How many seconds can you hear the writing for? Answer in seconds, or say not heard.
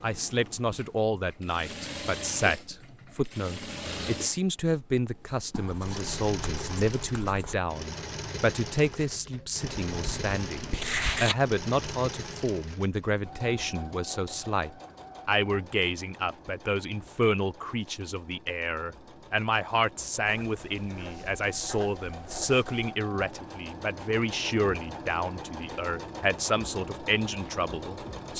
6 s.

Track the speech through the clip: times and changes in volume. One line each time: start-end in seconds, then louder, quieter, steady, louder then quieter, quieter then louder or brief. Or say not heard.
0.0-28.3 steady.